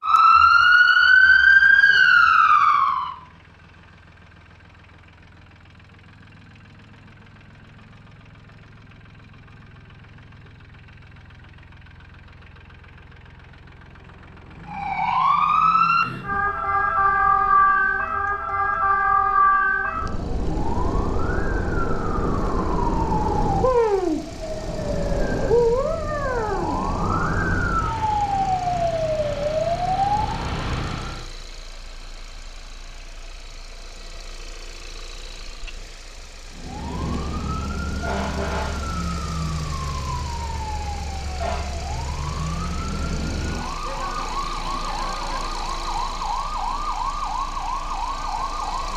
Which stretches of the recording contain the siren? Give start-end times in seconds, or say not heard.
0.0-3.1, 14.7-31.2, 36.5-48.9.